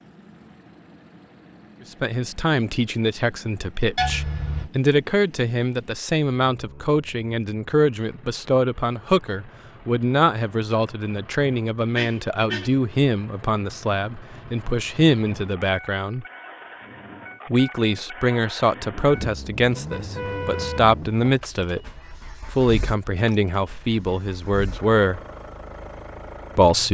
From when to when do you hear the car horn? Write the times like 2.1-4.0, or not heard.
4.0-4.7, 11.9-12.7, 19.1-21.2.